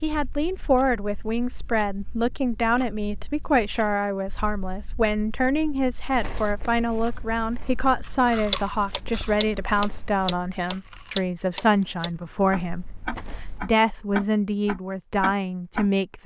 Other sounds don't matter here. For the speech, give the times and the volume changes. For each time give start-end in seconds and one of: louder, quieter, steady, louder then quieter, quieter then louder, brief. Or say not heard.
0.0-16.2 steady.